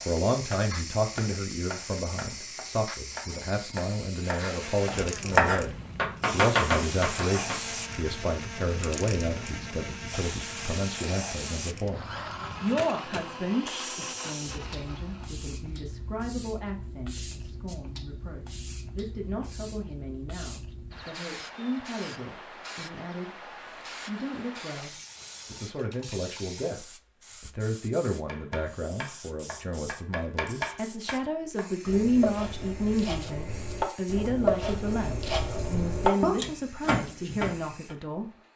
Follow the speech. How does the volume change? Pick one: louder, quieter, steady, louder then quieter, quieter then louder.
quieter then louder.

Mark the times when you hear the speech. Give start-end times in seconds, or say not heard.
0.1-23.4, 24.1-38.3.